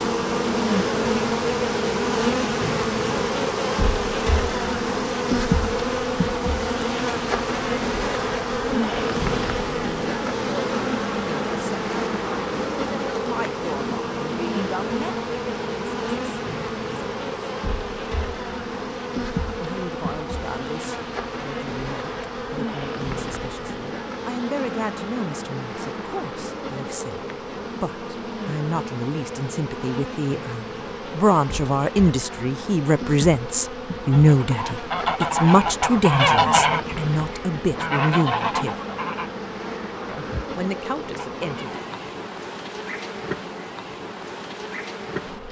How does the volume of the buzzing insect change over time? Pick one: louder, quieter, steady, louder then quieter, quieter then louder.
quieter.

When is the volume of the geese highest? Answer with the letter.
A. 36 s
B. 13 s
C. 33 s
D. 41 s
A.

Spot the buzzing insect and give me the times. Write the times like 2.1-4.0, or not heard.
0.0-45.4.